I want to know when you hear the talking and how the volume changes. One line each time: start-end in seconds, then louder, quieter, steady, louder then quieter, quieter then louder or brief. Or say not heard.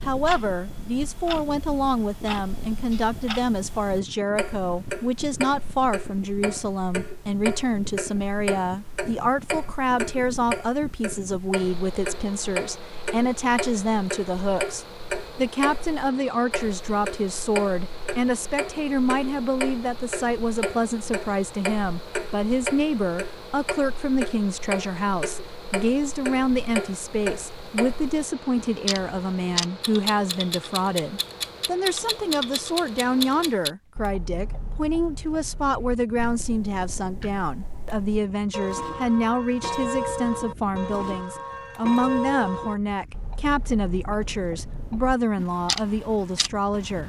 0.0-47.0 steady.